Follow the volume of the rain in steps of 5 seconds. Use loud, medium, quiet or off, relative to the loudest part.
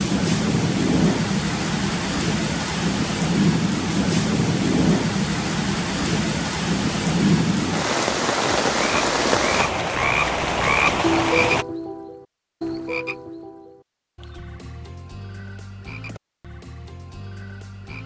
loud, loud, loud, off.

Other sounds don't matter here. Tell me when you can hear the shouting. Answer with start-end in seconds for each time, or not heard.
not heard.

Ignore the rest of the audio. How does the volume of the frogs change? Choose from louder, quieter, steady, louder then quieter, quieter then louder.
quieter.